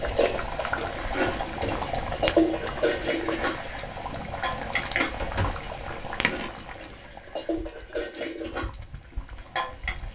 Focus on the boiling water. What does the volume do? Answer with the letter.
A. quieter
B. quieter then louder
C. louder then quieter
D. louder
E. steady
A.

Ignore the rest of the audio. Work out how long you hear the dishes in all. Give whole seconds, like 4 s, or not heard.
9 s.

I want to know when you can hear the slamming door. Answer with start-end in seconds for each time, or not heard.
1.4-1.9, 5.2-5.8.